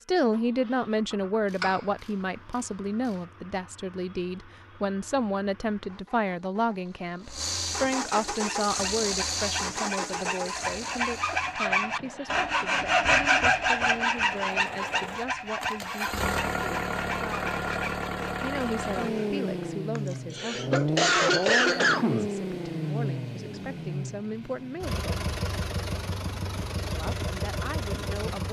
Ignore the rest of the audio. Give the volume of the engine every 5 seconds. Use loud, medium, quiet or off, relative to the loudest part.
quiet, loud, medium, loud, loud, loud.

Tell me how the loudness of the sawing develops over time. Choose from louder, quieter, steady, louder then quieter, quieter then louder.
louder then quieter.